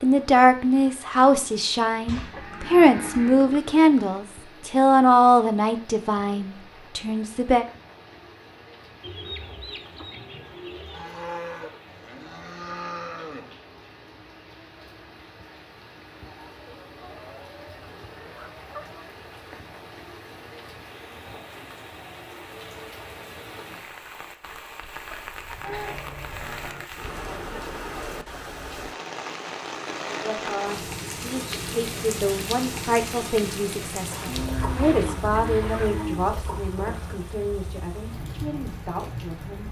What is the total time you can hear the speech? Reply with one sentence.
You can hear the speech for 17 seconds altogether.